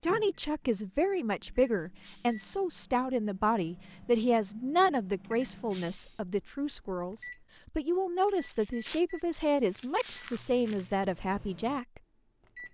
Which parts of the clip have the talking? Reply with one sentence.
You can hear the talking from 0.0 to 12.0 s.